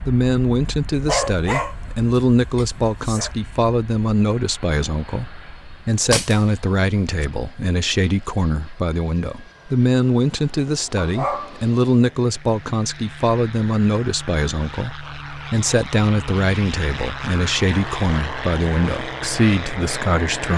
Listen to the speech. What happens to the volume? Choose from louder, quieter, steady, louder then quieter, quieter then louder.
steady.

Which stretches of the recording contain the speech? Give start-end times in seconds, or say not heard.
0.0-20.5.